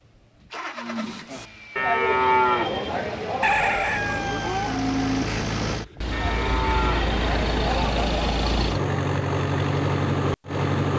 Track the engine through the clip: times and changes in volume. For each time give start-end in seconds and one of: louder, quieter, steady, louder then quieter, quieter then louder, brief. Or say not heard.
0.0-10.9 louder.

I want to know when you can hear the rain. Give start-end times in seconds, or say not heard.
not heard.